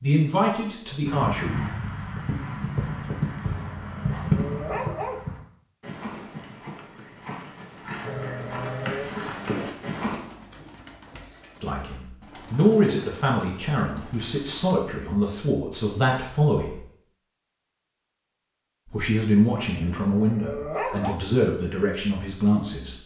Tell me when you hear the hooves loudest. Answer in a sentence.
The loudest moment of the hooves is at 4 seconds.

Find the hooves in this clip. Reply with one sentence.
You can hear the hooves from 1.1 to 10.2 s.